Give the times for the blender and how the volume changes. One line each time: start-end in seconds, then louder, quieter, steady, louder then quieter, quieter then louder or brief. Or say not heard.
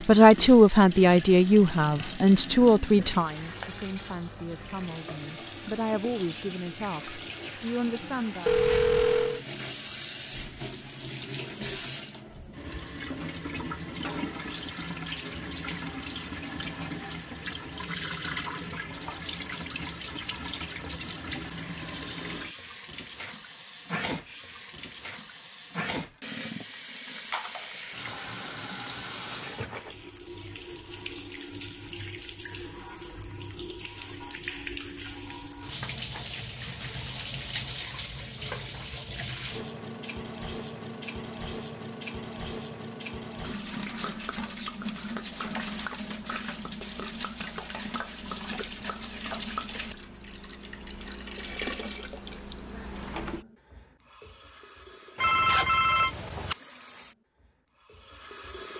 not heard.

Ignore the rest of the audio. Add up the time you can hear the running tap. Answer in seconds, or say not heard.
59 s.